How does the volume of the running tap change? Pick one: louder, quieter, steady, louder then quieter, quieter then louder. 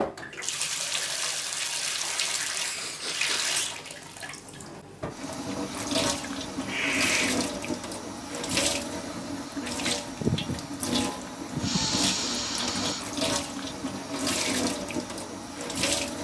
steady.